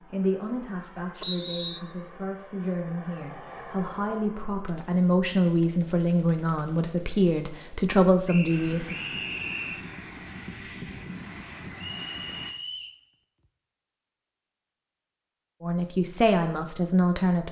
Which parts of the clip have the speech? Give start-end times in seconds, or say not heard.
0.1-8.9, 15.6-17.4.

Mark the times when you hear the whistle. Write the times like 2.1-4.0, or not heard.
1.2-1.8, 8.2-9.8, 11.8-13.0.